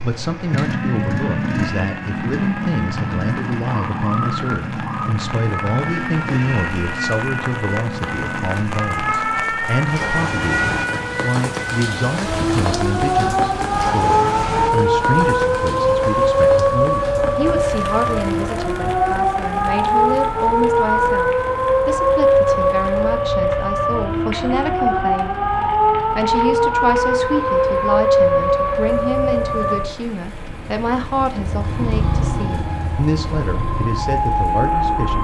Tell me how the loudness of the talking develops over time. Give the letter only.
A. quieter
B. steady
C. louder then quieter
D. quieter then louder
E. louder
B.